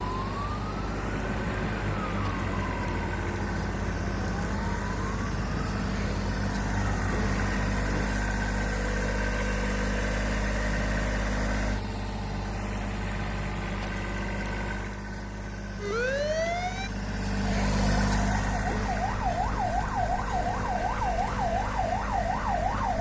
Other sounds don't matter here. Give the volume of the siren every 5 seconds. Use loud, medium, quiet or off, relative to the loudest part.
medium, medium, off, loud, loud.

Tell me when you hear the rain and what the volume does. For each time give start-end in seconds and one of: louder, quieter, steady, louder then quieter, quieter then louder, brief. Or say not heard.
not heard.